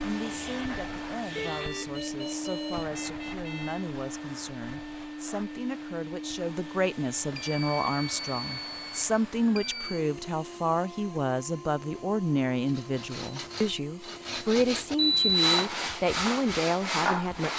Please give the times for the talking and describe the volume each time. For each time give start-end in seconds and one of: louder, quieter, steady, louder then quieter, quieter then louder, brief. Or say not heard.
0.0-17.5 louder.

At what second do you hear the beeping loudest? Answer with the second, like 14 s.
15 s.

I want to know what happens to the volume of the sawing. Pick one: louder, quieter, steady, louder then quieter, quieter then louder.
louder.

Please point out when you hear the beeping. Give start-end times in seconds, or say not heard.
1.4-3.9, 7.3-10.0, 14.9-15.8.